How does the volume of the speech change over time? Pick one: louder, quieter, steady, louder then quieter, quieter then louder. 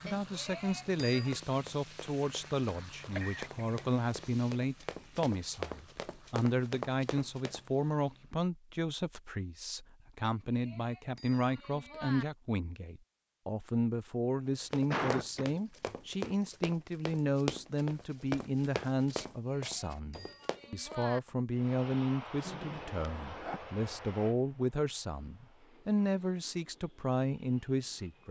steady.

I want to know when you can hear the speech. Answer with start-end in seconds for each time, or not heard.
0.0-28.2.